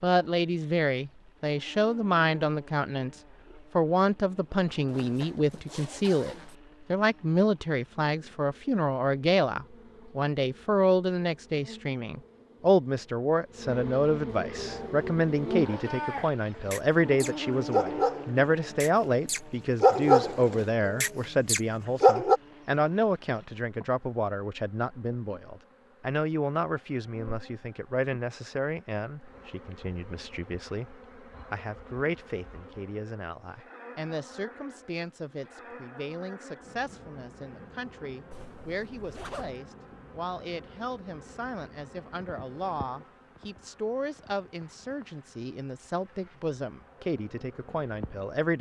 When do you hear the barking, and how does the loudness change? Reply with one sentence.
You can hear the barking from 14.6 to 22.4 s, getting louder then quieter.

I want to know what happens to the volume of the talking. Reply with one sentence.
The volume of the talking goes down.